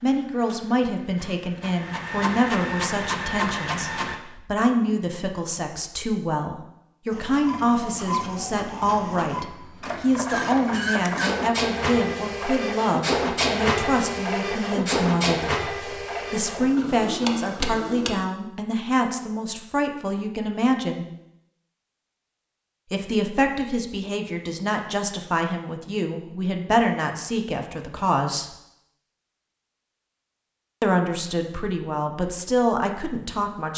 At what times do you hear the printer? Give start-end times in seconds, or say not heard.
0.0-4.2, 7.1-18.1.